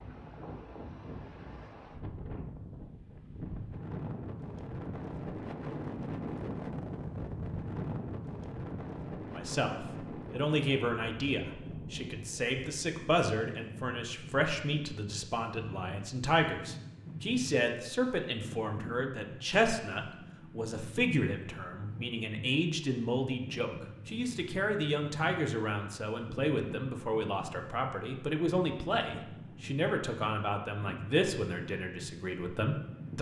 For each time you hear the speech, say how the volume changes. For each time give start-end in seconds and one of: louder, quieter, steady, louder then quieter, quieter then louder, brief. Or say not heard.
9.3-33.1 steady.